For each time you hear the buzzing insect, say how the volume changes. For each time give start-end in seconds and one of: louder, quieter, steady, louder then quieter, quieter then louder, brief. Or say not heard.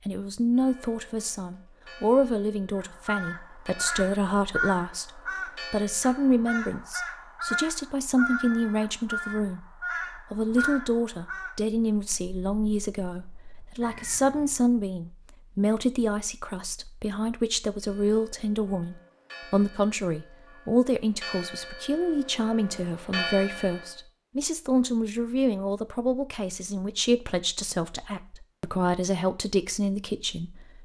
not heard.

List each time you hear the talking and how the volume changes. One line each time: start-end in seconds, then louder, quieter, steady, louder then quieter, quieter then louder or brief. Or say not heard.
0.1-30.8 steady.